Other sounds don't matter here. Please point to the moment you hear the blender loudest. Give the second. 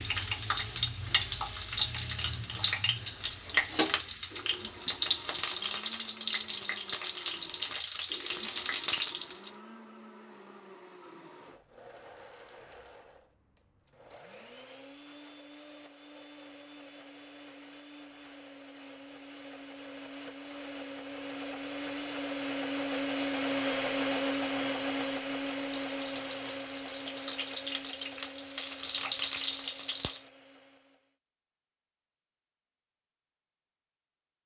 24 s.